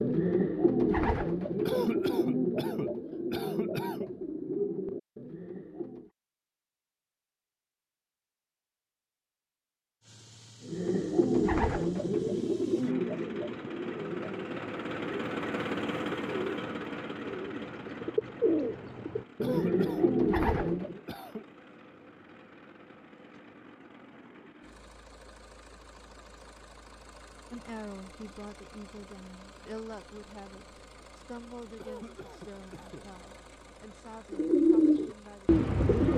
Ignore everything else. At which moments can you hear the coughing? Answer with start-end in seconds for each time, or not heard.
1.6-4.1, 19.4-21.4, 31.8-33.0.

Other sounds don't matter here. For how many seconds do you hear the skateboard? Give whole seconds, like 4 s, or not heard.
not heard.